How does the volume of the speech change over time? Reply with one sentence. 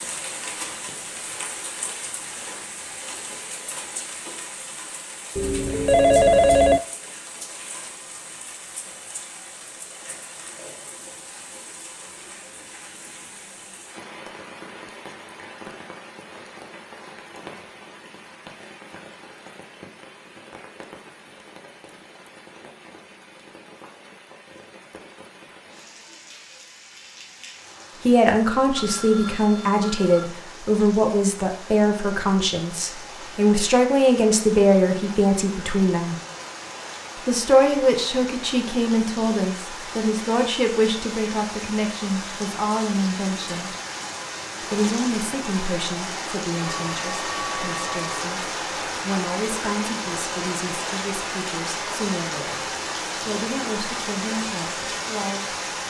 The volume of the speech goes down.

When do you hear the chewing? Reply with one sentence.
The chewing can't be heard in this clip.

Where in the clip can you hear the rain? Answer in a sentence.
The rain can be heard from 0.0 to 55.8 s.